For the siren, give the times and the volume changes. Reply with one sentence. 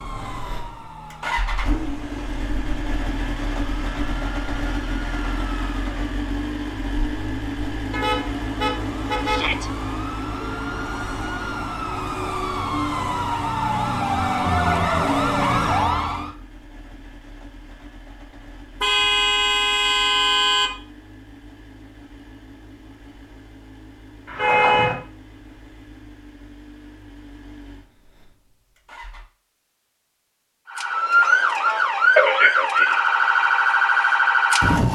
You can hear the siren from 0.0 to 16.4 s, getting louder; and from 30.7 to 34.9 s, at a steady volume.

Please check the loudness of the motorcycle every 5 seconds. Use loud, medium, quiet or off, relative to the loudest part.
loud, loud, medium, quiet, quiet, quiet, off.